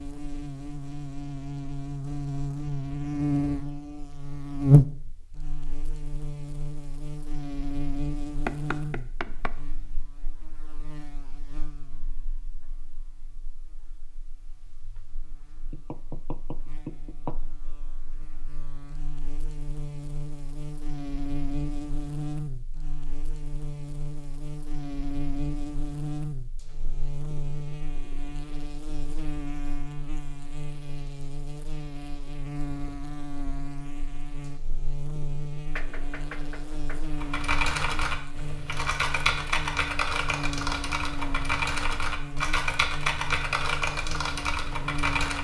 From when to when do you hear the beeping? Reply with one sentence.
The beeping can't be heard in this clip.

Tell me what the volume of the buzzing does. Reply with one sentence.
The volume of the buzzing goes down, then up.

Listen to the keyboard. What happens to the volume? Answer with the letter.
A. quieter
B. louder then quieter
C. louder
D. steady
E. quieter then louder
D.